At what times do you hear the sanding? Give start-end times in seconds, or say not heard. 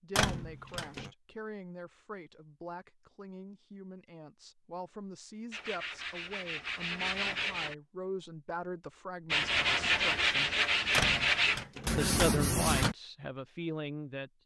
5.5-7.8, 9.3-12.9.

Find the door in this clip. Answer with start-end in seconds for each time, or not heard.
0.1-1.1, 10.9-12.9.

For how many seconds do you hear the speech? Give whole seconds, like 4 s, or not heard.
13 s.